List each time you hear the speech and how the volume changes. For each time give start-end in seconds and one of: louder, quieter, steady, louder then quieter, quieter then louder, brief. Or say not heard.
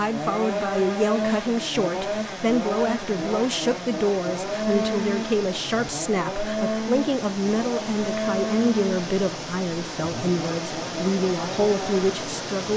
0.0-12.7 steady.